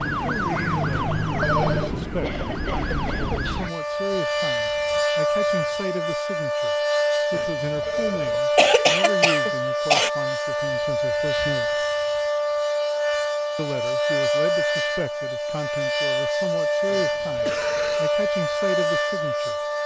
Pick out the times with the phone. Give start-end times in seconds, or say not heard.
0.9-2.0, 7.3-8.4, 16.9-18.0.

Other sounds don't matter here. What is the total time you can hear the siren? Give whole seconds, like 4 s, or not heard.
20 s.